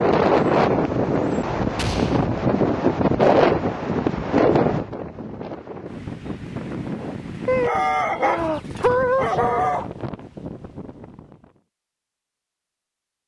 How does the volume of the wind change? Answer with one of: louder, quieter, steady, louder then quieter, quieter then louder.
quieter.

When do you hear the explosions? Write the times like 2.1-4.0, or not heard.
1.8-2.2.